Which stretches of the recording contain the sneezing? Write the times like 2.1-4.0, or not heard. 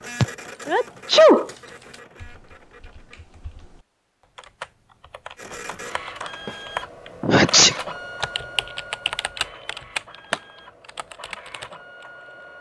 0.2-1.4, 7.2-7.8.